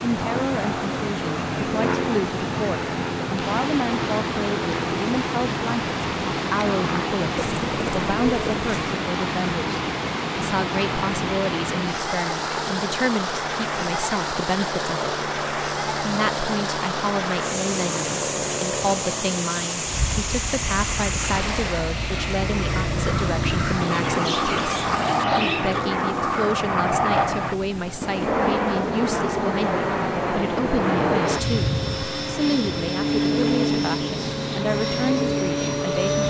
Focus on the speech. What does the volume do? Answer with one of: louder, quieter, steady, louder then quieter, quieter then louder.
steady.